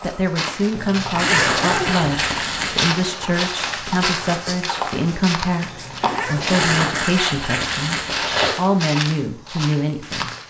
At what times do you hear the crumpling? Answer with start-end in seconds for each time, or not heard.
1.1-3.0, 6.5-8.6.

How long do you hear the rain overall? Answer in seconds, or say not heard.
not heard.